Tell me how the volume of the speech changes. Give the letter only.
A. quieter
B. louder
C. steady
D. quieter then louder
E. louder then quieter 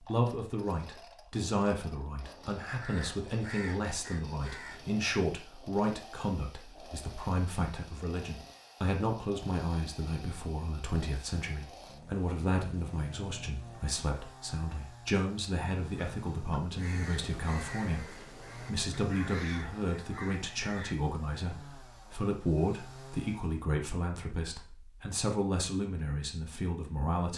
C.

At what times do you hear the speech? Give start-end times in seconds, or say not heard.
0.0-27.3.